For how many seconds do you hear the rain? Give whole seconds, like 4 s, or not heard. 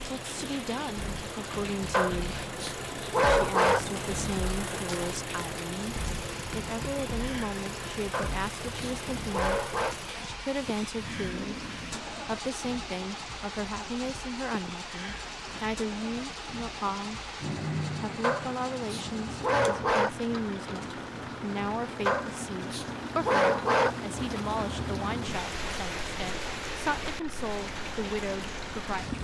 29 s.